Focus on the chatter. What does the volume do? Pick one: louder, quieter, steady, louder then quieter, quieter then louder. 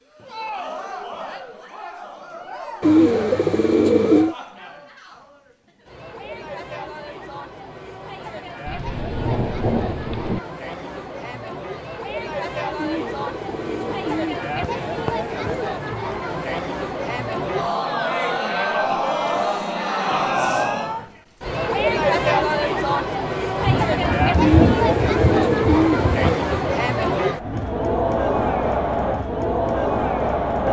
louder.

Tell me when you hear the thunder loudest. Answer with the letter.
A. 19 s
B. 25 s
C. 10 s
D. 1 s
B.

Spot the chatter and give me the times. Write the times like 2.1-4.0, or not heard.
0.1-30.6.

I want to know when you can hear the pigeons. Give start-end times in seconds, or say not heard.
2.8-4.3, 12.8-15.7, 24.4-26.4.